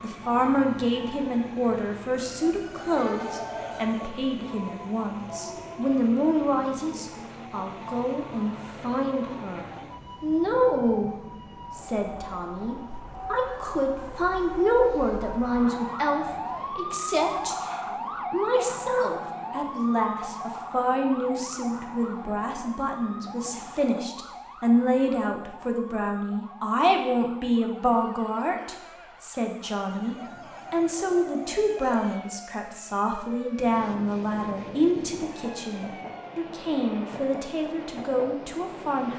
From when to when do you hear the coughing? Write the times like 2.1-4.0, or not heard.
not heard.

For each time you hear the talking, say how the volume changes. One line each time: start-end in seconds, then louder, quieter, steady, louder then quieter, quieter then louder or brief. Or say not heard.
0.0-39.1 steady.